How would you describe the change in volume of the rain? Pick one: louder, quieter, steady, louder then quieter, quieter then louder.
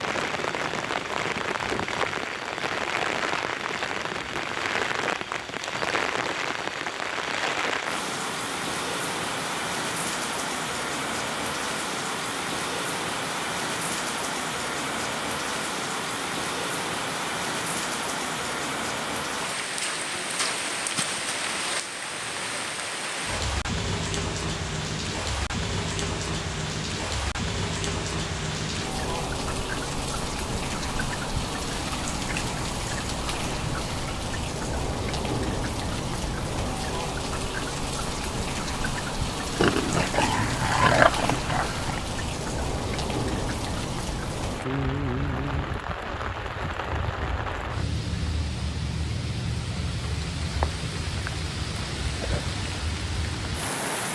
steady.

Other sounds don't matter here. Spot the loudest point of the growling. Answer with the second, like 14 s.
41 s.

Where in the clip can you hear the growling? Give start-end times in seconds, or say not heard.
39.5-42.0.